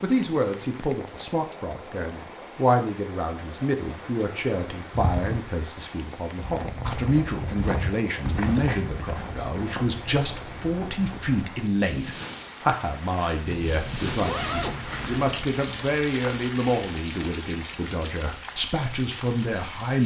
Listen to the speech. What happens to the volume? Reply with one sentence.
The volume of the speech stays about the same.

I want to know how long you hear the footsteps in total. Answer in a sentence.
The footsteps can be heard for 5 seconds in total.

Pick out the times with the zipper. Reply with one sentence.
The zipper can be heard from 4.9 to 5.5 s and from 13.4 to 15.4 s.